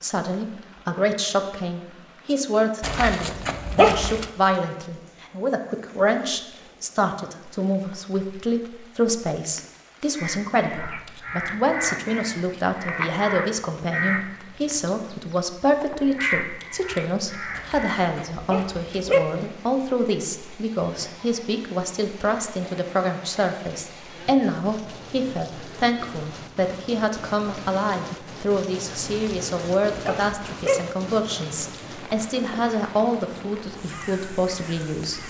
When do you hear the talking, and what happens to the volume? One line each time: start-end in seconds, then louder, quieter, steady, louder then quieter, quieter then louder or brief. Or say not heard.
0.0-35.2 steady.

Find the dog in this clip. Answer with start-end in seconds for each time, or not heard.
2.8-4.2, 17.6-19.2, 29.1-30.8.